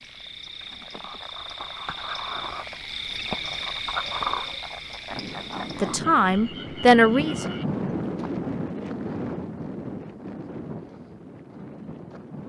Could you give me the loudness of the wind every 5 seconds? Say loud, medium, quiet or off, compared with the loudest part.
off, loud, medium.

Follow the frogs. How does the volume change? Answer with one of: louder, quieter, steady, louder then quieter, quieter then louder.
louder then quieter.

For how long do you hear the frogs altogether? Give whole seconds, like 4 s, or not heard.
8 s.